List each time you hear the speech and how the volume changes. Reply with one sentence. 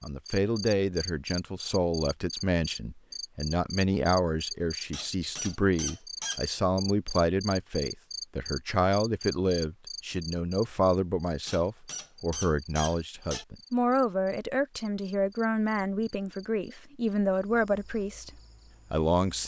The speech can be heard from 0.0 to 18.3 s, at a steady volume; and briefly from 18.9 to 19.4 s.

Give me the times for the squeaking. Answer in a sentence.
You can hear the squeaking from 4.9 to 6.4 s and from 11.4 to 13.4 s.